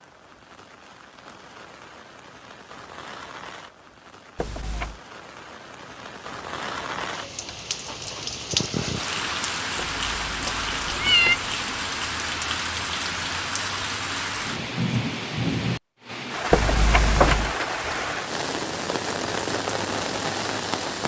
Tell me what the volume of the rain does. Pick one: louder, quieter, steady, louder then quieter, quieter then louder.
louder.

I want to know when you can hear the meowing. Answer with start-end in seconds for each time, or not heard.
4.3-5.0, 9.9-11.3, 16.5-17.6.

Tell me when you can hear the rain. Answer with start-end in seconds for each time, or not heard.
0.0-21.0.